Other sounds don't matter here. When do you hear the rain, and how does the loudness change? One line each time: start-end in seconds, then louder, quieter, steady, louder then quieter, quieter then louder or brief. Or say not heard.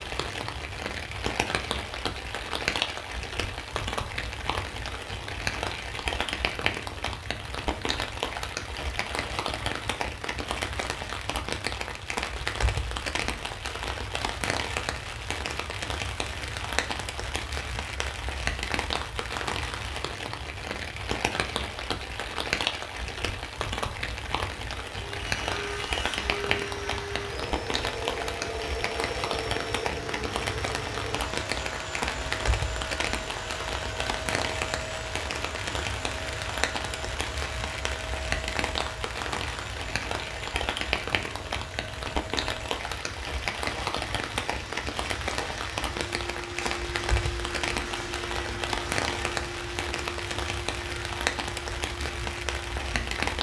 0.0-53.3 steady.